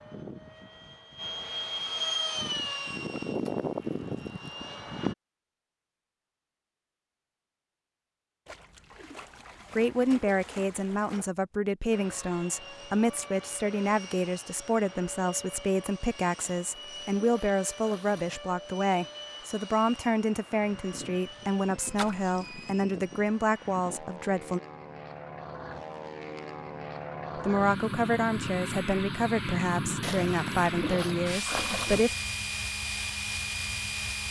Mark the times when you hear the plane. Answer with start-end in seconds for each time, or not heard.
0.0-5.2, 11.9-34.2.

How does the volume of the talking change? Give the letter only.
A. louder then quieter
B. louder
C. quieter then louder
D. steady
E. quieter
D.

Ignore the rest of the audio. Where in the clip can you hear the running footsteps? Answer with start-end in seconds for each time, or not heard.
not heard.